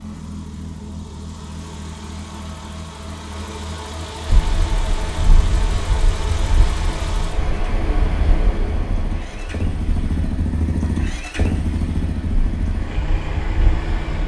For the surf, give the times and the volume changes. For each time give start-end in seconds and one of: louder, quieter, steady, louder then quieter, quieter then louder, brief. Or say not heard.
4.2-14.2 quieter then louder.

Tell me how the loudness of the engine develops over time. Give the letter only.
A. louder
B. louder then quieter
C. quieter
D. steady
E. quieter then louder
A.